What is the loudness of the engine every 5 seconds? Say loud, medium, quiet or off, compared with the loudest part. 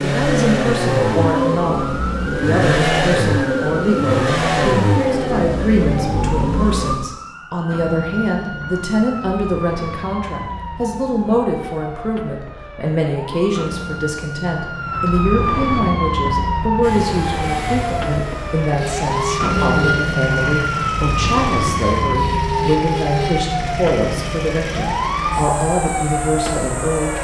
loud, loud, off, medium, medium, quiet.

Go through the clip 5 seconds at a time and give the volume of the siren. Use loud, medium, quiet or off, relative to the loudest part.
medium, medium, medium, loud, loud, loud.